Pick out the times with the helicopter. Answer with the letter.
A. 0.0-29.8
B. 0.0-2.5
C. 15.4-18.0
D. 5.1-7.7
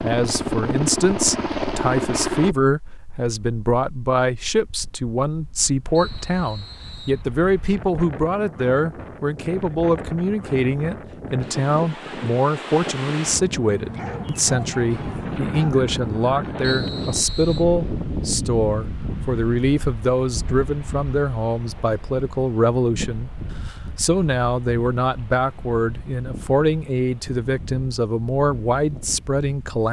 B.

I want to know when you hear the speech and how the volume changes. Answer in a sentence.
The speech can be heard from 0.0 to 29.8 s, at a steady volume.